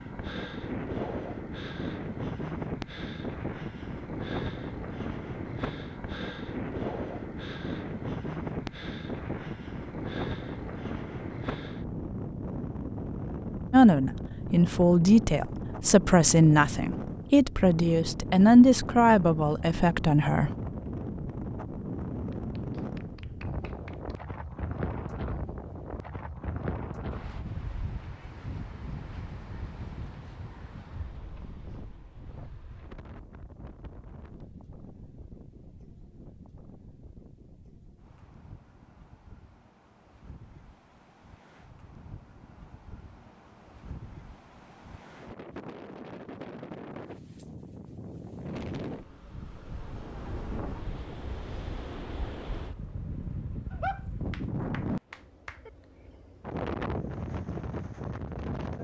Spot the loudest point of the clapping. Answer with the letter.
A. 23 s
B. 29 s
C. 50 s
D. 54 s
D.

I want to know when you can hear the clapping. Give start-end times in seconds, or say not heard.
22.3-24.2, 53.7-55.7.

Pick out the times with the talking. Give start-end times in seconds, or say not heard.
13.7-20.5.